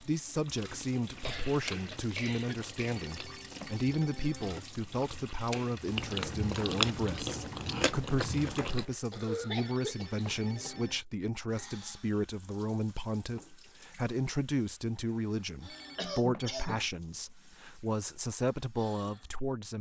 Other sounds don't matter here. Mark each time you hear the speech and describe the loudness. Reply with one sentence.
You can hear the speech from 0.0 to 19.7 s, at a steady volume.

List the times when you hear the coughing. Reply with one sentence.
The coughing can be heard from 1.0 to 3.0 s, from 9.1 to 10.9 s and from 15.9 to 16.9 s.